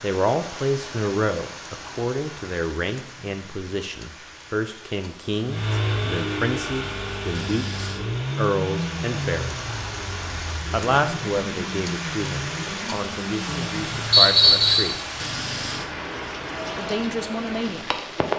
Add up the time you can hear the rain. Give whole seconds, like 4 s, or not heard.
18 s.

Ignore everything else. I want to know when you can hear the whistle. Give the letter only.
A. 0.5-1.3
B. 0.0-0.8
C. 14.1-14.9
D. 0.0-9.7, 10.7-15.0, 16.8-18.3
C.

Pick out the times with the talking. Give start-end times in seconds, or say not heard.
0.0-9.7, 10.7-15.0, 16.8-18.3.